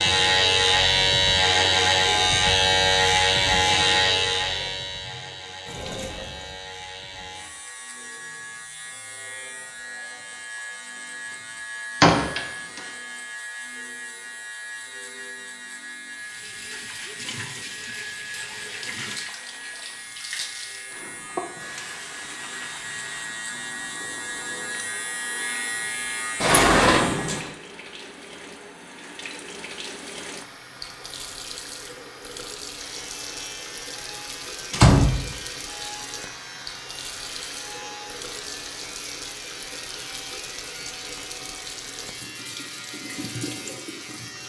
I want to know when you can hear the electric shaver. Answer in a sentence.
You can hear the electric shaver from 0.0 to 27.4 s and from 32.8 to 44.4 s.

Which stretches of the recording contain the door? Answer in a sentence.
The door can be heard from 12.0 to 12.8 s, from 26.4 to 27.4 s and from 34.7 to 35.2 s.